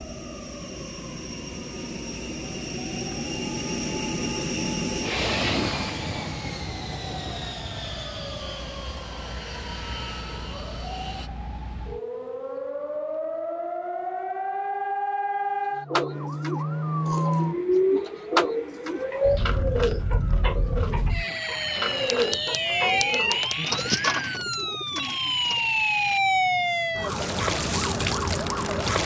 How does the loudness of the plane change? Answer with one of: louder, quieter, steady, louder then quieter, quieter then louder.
louder then quieter.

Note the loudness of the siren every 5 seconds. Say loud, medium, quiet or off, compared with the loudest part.
quiet, quiet, medium, loud, loud, loud.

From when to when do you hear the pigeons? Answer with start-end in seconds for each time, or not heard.
15.9-25.6.